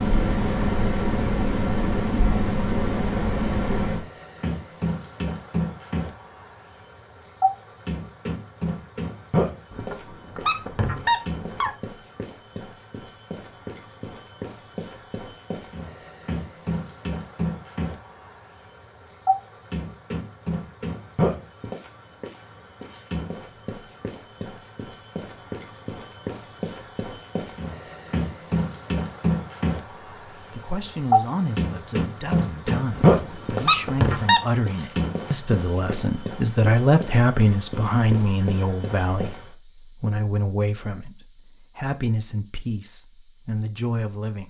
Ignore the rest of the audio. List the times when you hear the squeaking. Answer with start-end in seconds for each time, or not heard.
9.7-11.7, 33.0-34.4.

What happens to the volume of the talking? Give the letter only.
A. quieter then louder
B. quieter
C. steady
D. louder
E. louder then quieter
E.